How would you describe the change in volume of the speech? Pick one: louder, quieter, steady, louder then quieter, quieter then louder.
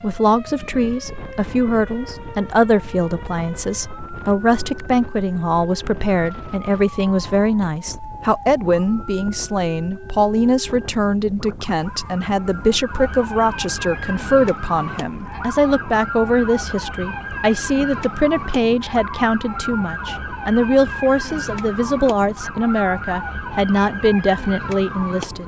steady.